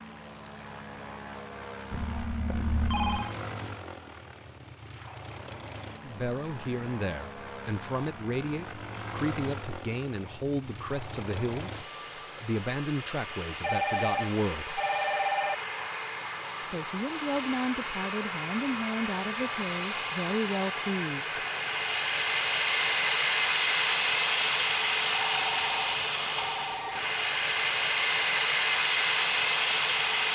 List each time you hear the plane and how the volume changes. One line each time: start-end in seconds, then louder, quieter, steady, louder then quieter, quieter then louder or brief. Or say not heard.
0.0-30.2 louder.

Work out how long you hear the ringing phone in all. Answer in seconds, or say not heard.
5 s.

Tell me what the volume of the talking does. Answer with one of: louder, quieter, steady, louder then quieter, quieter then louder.
steady.